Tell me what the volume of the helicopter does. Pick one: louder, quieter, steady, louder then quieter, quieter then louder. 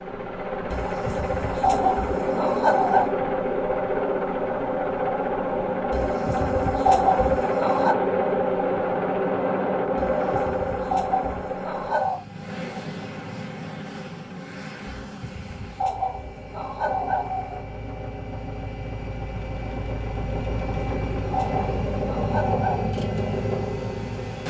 quieter then louder.